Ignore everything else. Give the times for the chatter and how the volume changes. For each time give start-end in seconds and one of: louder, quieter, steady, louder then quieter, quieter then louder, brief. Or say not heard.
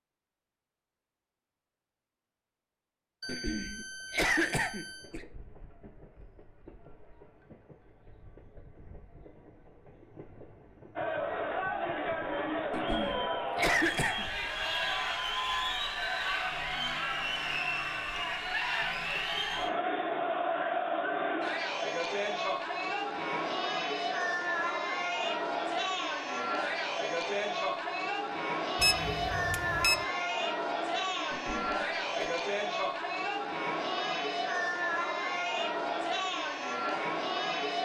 10.9-37.8 steady.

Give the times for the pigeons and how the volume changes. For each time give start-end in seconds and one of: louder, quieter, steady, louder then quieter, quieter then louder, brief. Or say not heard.
not heard.